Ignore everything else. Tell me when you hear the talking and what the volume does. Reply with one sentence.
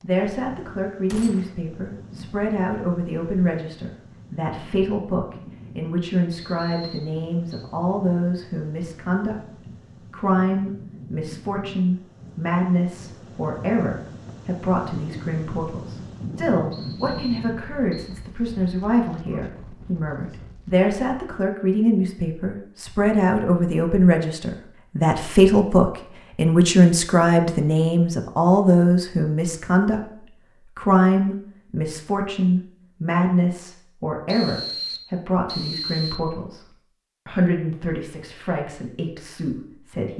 The talking can be heard from 0.0 to 40.1 s, getting louder then quieter.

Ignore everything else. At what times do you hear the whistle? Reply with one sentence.
The whistle can be heard from 6.3 to 7.7 s, from 16.7 to 18.2 s and from 34.2 to 36.1 s.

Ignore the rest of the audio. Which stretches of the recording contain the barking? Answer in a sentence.
The barking can't be heard in this clip.